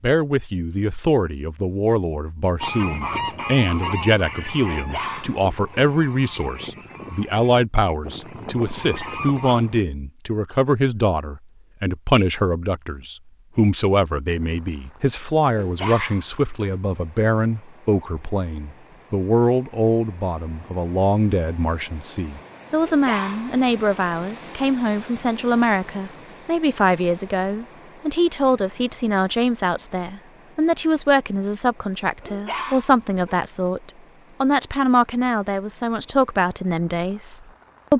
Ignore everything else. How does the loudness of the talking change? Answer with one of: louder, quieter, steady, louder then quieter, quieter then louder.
steady.